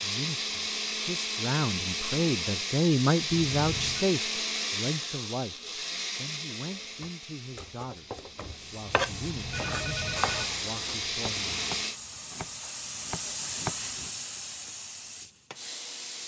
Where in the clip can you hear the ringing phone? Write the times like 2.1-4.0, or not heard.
3.5-4.0, 8.8-10.4.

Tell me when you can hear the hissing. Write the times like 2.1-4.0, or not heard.
8.5-16.2.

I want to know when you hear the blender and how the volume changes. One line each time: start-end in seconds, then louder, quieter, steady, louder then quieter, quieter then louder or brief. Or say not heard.
0.0-11.9 quieter then louder.